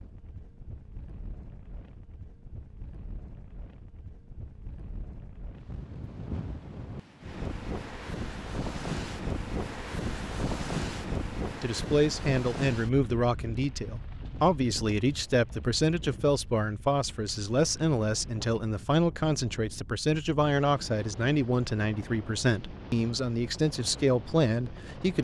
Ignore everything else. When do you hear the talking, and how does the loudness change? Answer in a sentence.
The talking can be heard from 11.6 to 25.2 s, at a steady volume.